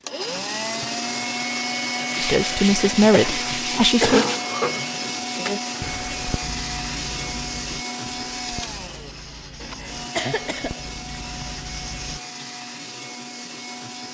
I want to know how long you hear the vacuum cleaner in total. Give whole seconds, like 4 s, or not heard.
14 s.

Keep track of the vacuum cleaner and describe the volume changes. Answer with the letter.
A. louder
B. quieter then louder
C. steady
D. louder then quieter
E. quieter
E.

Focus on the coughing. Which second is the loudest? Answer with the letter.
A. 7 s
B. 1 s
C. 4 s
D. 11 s
C.